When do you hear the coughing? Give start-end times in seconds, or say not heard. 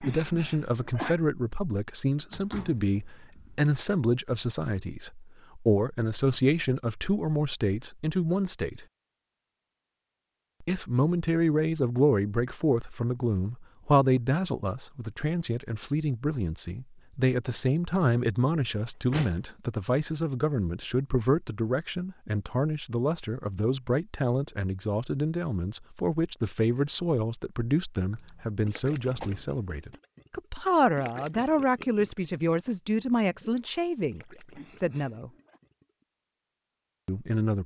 0.0-1.1, 34.5-35.6.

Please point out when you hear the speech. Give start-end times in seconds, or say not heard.
0.0-8.8, 10.6-35.3, 37.0-37.6.